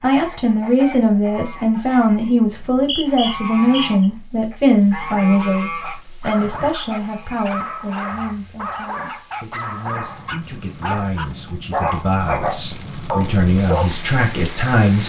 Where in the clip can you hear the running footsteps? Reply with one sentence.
You can't hear the running footsteps here.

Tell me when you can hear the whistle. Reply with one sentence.
You can hear the whistle from 2.5 to 4.0 s.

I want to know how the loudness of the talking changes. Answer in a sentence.
The loudness of the talking goes down, then up.